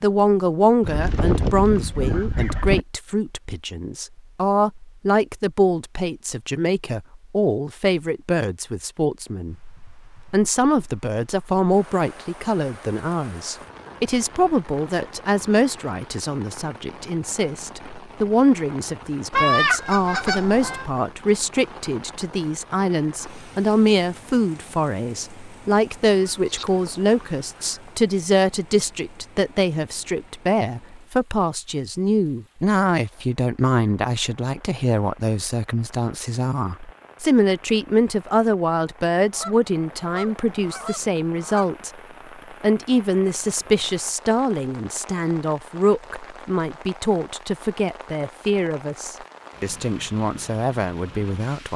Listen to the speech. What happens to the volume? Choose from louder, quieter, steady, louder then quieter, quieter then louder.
steady.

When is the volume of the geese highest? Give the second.
20 s.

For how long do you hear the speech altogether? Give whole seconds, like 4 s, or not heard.
51 s.